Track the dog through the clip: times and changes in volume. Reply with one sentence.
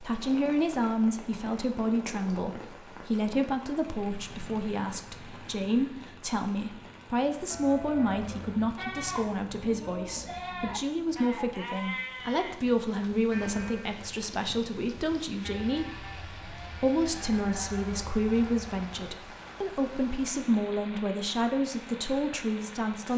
You can't hear the dog here.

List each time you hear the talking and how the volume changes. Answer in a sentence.
You can hear the talking from 0.0 to 23.1 s, at a steady volume.